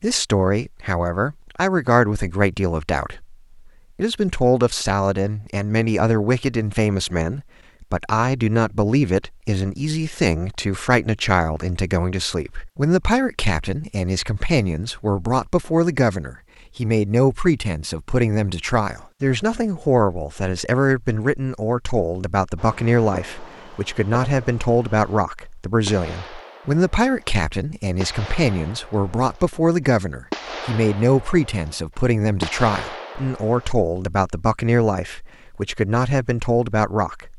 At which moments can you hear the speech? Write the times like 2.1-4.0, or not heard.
0.0-37.3.